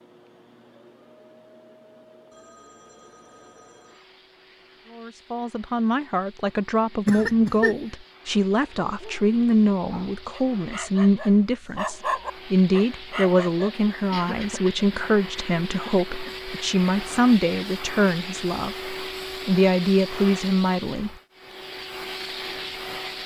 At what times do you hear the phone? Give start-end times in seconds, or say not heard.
2.3-4.0.